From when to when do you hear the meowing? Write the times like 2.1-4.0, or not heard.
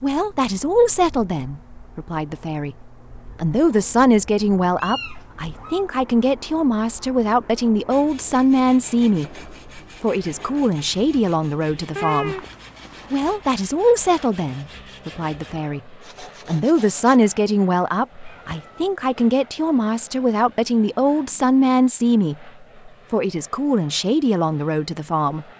4.8-5.8, 11.9-13.2, 18.2-18.9.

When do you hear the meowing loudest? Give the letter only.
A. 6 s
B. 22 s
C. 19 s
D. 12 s
D.